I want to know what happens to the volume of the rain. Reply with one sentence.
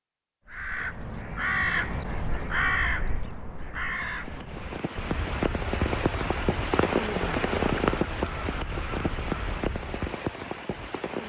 The loudness of the rain goes up, then down.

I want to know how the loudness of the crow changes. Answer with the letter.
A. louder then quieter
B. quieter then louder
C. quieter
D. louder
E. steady
B.